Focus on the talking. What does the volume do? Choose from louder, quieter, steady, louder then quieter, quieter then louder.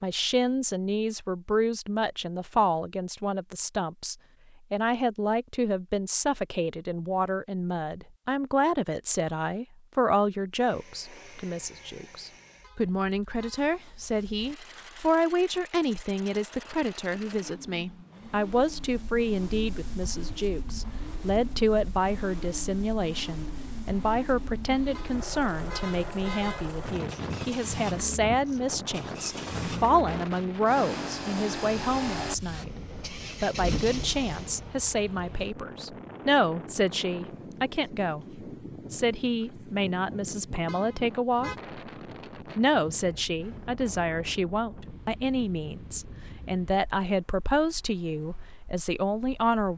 steady.